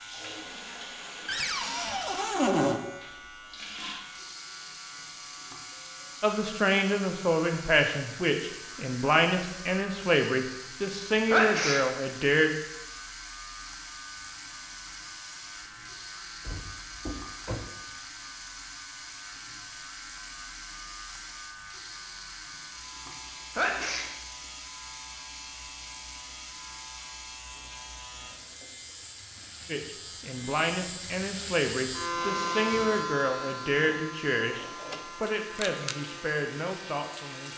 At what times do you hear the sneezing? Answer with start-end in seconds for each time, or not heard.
11.3-11.8, 23.6-24.1.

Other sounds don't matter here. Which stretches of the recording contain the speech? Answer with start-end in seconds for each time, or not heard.
6.2-12.6, 29.6-37.5.